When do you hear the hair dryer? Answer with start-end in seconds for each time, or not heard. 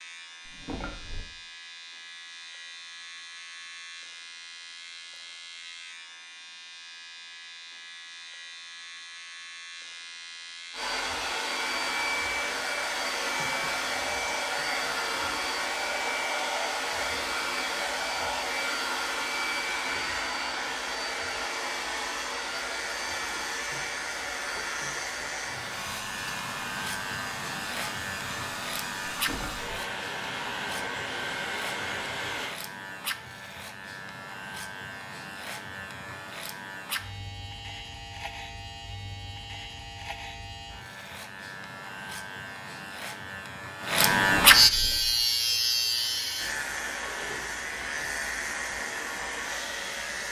10.7-32.5, 44.9-50.2.